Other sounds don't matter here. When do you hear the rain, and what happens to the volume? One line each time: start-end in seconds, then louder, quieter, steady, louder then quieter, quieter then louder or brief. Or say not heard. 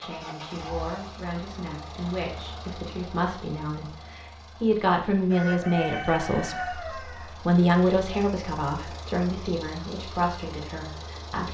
not heard.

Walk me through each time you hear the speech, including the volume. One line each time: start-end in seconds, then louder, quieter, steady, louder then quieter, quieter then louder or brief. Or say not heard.
0.0-11.4 louder then quieter.